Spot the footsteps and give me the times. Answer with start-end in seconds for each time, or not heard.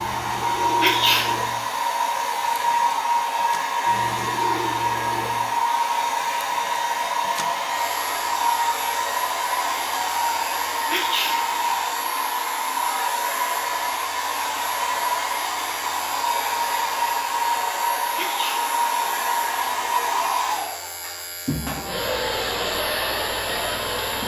not heard.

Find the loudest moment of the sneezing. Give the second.
1 s.